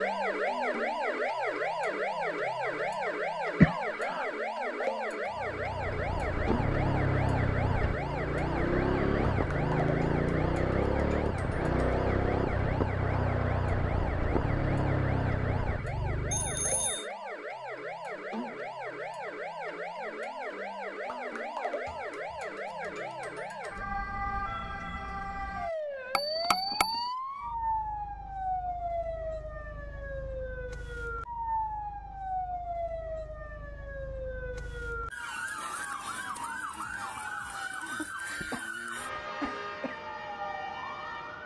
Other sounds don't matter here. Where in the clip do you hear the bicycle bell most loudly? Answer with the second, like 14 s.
27 s.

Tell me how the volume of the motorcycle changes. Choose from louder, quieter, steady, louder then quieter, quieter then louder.
steady.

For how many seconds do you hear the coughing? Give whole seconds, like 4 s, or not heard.
3 s.